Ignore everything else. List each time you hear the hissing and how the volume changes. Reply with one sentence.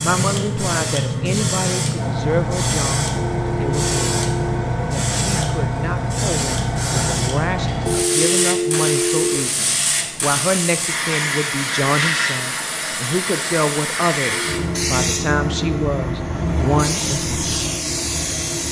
The hissing can be heard from 0.0 to 18.6 s, at a steady volume.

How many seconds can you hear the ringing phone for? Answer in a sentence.
You can hear the ringing phone for 4 seconds altogether.